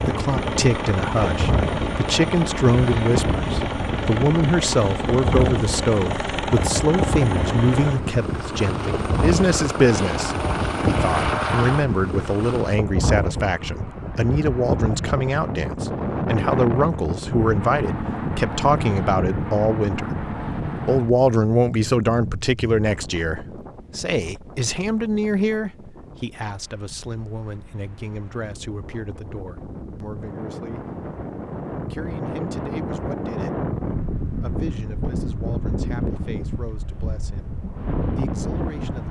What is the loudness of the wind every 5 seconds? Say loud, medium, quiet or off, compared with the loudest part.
loud, loud, loud, loud, medium, quiet, loud, loud.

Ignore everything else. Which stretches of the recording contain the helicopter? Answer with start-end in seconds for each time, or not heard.
0.0-12.8.